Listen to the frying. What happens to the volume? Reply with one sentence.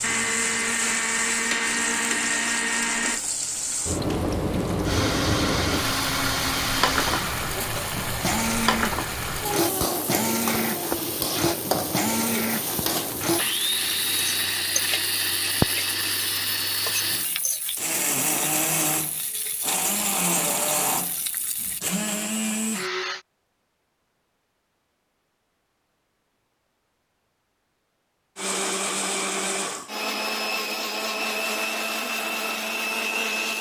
The volume of the frying goes down.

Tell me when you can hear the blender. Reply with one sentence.
You can hear the blender from 0.0 to 3.2 s, from 4.8 to 23.2 s and from 28.4 to 33.5 s.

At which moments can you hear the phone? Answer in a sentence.
The phone can't be heard in this clip.